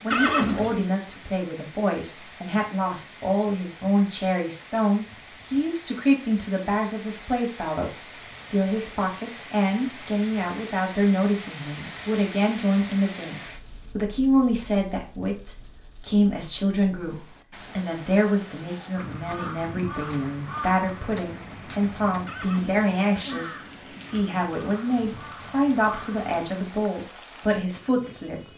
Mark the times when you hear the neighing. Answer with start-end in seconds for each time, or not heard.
0.1-0.8, 22.2-23.4.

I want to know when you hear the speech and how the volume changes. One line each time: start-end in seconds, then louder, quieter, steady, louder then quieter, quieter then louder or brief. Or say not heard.
0.0-28.5 steady.